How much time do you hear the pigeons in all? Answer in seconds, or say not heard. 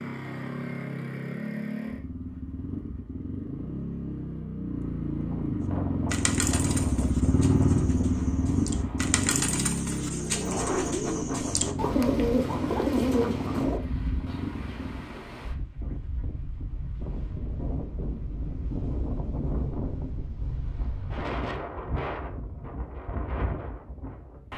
8 s.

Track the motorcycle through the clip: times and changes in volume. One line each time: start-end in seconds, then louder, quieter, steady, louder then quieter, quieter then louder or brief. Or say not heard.
0.0-15.1 louder then quieter.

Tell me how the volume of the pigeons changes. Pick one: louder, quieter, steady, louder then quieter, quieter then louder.
louder.